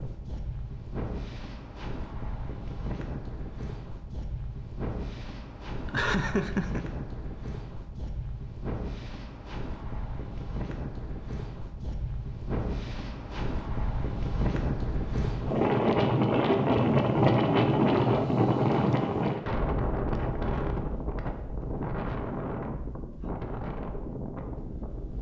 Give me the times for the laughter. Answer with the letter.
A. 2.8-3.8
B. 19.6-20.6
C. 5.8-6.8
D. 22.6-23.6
C.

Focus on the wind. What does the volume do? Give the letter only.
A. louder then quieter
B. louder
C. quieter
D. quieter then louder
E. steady
A.